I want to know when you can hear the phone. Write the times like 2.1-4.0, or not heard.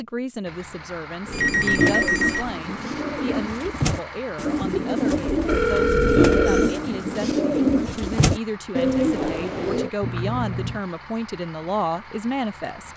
1.3-2.5, 5.3-6.8, 10.0-10.8.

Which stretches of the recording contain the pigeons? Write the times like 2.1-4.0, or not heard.
1.2-9.9.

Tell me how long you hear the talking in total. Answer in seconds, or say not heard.
13 s.